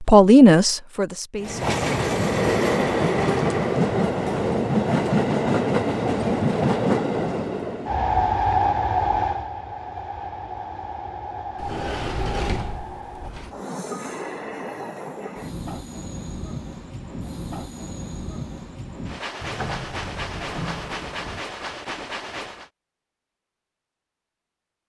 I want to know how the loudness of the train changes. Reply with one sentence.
The volume of the train goes down.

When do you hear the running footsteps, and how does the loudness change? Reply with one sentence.
You can't hear the running footsteps here.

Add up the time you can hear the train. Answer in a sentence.
You can hear the train for 21 seconds altogether.